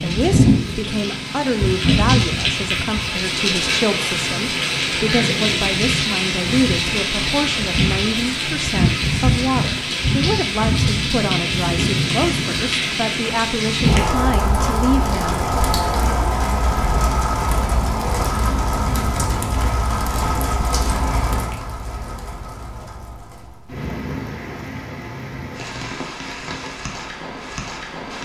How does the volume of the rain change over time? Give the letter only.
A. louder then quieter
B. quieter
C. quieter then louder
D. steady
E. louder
B.